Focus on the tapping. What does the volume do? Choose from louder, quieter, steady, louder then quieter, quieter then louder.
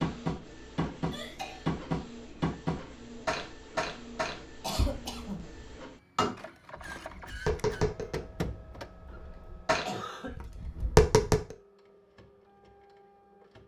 quieter then louder.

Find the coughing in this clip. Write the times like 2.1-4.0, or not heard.
1.1-1.6, 4.6-5.5, 9.8-10.9.